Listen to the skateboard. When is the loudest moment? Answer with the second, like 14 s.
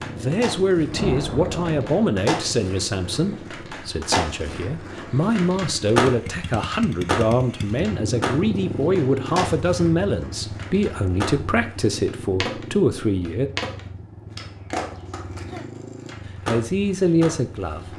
6 s.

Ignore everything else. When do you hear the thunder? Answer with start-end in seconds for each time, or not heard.
0.8-2.0.